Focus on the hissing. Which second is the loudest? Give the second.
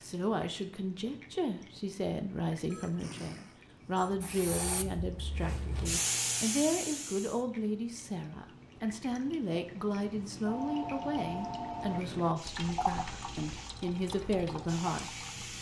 6 s.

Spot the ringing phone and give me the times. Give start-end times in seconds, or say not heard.
2.7-4.2, 10.4-12.0.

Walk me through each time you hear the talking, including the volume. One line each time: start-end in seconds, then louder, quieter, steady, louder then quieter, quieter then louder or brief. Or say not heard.
0.0-15.2 steady.